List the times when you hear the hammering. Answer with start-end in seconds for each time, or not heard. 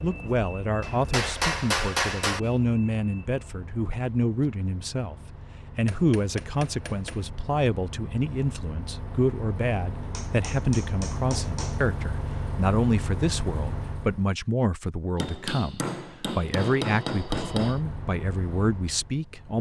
0.8-2.4, 5.8-7.3, 10.1-11.9, 15.2-17.8.